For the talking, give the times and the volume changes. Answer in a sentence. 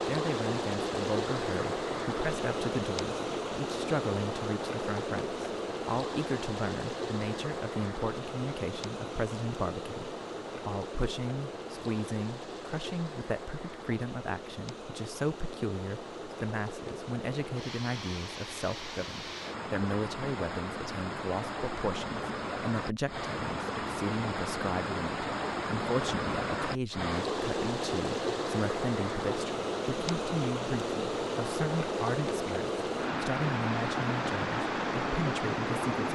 You can hear the talking from 0.1 to 36.1 s, at a steady volume.